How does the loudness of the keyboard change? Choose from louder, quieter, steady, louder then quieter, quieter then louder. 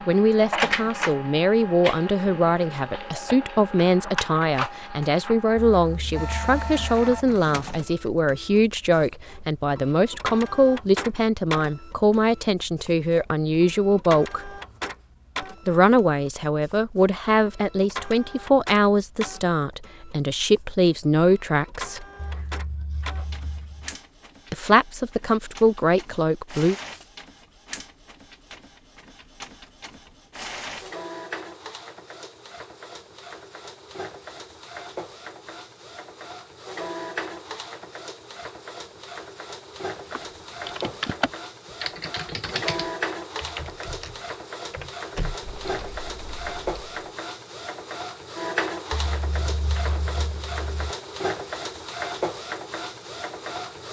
quieter.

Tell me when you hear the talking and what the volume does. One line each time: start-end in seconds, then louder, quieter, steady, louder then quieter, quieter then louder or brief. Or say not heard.
0.1-14.5 steady
15.7-22.1 steady
24.5-26.8 brief.